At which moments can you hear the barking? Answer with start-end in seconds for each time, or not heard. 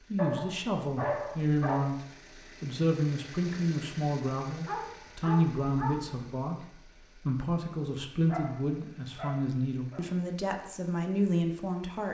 0.1-1.8, 4.6-6.2, 8.2-10.1.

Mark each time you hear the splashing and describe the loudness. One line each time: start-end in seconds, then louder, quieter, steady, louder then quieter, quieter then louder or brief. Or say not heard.
not heard.